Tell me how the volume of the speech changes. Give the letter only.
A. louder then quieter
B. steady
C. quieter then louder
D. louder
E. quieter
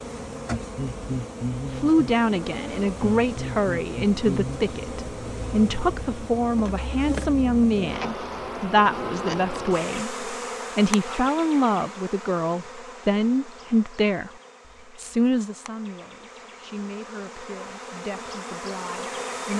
E.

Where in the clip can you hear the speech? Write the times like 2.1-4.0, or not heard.
1.8-14.3, 14.9-19.5.